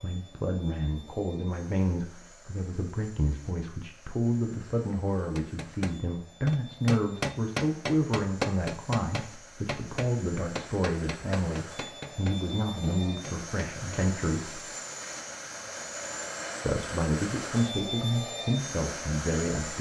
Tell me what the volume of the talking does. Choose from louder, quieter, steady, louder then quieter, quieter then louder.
steady.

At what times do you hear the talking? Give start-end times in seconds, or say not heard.
0.0-14.6, 16.6-19.7.